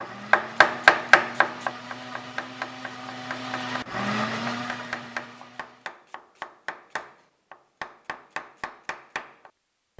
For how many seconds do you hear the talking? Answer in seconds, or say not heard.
not heard.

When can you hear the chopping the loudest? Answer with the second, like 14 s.
1 s.